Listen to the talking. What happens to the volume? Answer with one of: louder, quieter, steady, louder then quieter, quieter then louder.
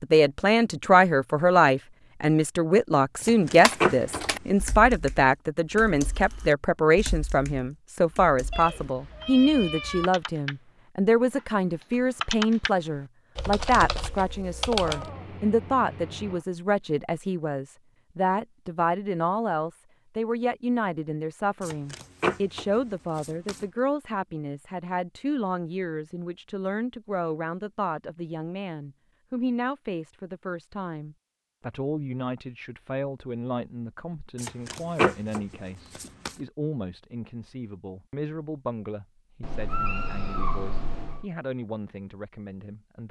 quieter.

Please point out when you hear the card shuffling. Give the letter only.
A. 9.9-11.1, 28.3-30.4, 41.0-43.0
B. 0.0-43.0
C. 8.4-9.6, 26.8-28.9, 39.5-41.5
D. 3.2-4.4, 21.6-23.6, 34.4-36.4
D.